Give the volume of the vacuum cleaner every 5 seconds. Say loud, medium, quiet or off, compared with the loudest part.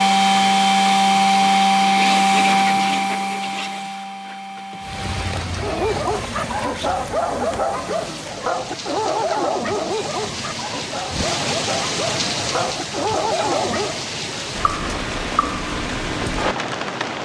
loud, quiet, off, off.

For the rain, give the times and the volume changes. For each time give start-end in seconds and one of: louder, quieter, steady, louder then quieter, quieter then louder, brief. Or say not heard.
4.8-17.2 louder.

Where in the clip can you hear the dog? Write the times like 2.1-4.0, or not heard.
5.5-14.1.